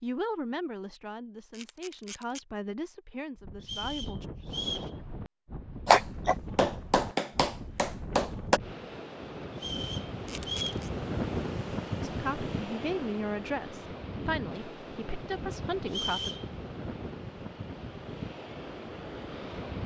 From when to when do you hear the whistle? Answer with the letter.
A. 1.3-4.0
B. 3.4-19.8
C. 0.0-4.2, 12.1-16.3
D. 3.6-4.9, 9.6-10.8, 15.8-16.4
D.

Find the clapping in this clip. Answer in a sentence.
You can hear the clapping from 5.8 to 8.6 s.